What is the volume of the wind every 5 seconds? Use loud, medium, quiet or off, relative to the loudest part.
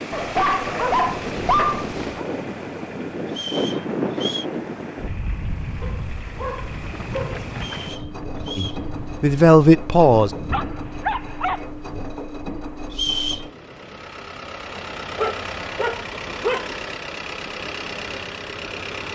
loud, medium, medium, off.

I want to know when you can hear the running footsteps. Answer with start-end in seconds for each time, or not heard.
not heard.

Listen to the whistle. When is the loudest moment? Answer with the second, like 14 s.
13 s.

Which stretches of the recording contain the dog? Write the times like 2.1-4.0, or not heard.
0.1-2.2, 5.8-7.4, 10.5-11.7, 14.7-16.7.